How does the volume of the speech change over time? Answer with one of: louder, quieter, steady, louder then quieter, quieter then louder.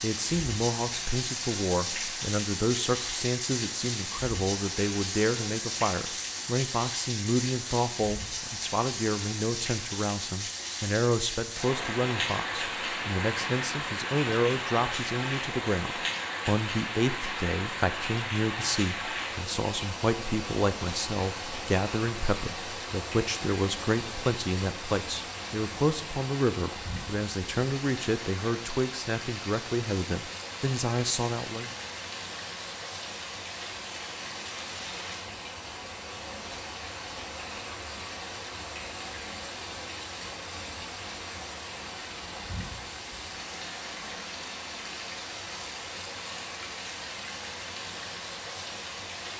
steady.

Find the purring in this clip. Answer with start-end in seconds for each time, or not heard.
not heard.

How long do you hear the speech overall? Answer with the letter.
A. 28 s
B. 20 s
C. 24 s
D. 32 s
D.